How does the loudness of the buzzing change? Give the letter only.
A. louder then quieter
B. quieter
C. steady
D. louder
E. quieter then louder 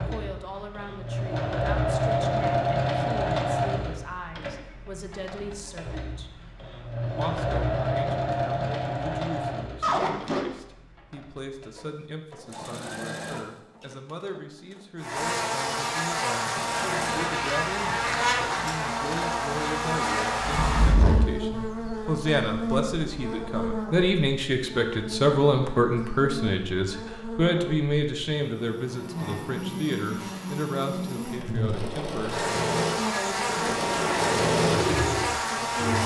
E.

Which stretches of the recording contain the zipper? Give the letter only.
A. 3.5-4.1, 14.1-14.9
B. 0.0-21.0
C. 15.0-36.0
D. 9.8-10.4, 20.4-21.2
D.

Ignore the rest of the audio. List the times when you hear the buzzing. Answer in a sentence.
You can hear the buzzing from 15.0 to 36.0 s.